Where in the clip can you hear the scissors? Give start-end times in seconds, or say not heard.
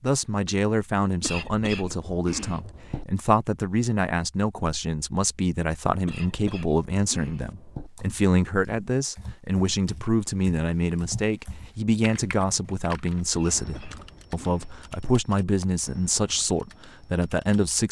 not heard.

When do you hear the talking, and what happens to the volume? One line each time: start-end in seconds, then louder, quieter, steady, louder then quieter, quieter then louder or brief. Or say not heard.
0.0-17.8 steady.